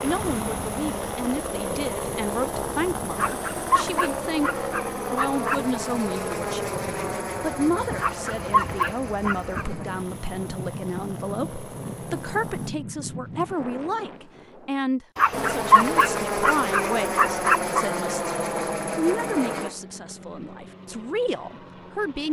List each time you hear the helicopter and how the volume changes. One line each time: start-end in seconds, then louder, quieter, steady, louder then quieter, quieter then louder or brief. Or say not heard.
0.0-12.7 quieter
15.3-22.2 quieter.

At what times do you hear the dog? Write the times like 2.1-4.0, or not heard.
3.1-5.6, 8.0-9.7, 15.2-17.9.